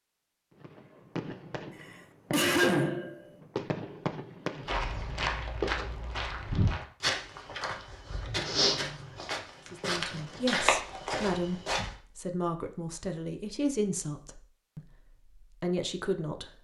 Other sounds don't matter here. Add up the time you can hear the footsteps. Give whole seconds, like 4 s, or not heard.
7 s.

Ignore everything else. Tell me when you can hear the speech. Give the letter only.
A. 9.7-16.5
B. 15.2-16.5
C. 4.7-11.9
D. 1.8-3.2
A.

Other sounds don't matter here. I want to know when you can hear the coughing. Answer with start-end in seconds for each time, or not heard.
1.8-3.2.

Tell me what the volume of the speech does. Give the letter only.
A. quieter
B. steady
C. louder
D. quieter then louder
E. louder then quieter
B.